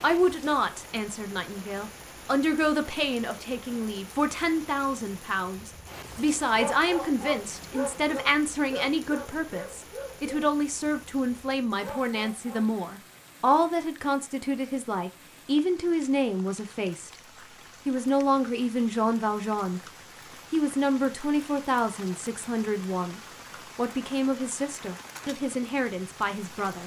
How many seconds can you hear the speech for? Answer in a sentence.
The speech can be heard for 25 seconds in total.